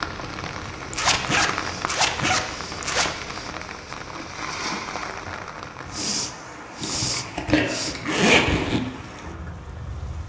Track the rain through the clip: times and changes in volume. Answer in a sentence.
The rain can be heard from 0.0 to 10.2 s, getting quieter.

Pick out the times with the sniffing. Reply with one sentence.
You can hear the sniffing from 1.5 to 3.5 s and from 5.9 to 8.0 s.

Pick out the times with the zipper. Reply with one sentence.
You can hear the zipper from 0.9 to 3.1 s and from 6.8 to 8.8 s.